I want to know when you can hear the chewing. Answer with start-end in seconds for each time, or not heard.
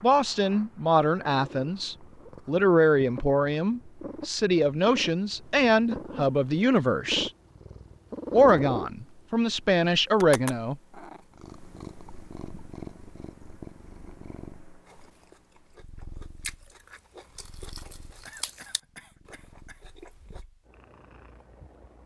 14.8-20.4.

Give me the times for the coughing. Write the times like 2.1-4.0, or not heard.
18.2-19.9.